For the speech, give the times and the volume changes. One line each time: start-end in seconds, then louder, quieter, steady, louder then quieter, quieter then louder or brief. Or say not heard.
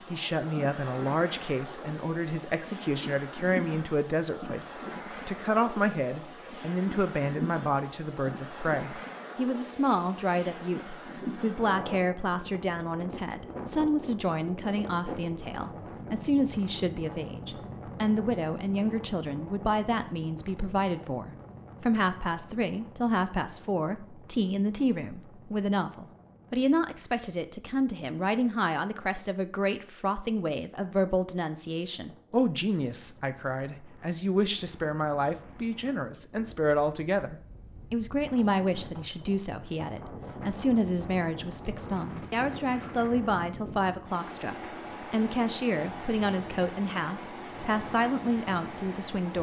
0.1-49.3 steady.